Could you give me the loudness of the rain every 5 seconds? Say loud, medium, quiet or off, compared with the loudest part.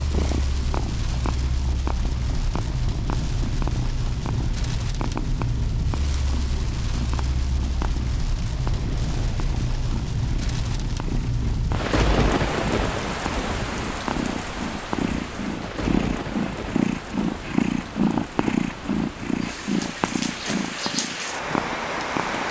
loud, loud, loud, medium, loud.